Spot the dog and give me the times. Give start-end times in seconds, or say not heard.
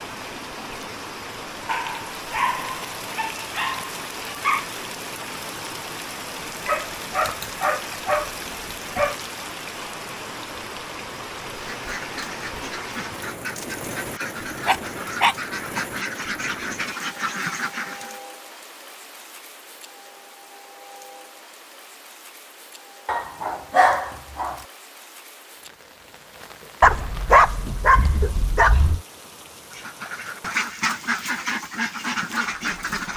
1.6-4.7, 6.7-9.2, 14.7-15.8, 23.1-24.6, 26.8-29.0.